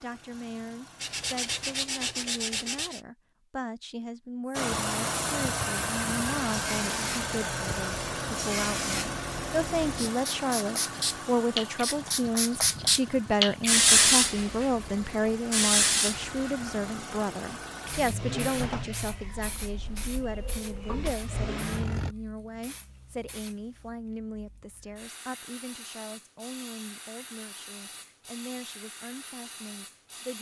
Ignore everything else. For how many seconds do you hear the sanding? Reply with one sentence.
You can hear the sanding for 2 seconds altogether.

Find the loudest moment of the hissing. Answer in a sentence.
The loudest moment of the hissing is at 14 seconds.